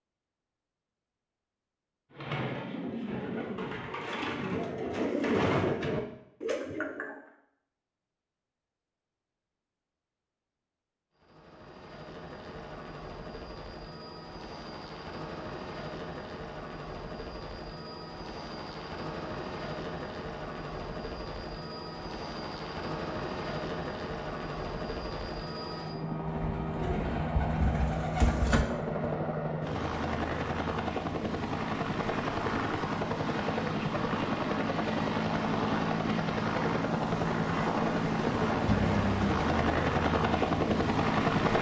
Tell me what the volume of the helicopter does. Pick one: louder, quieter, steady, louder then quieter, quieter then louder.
louder.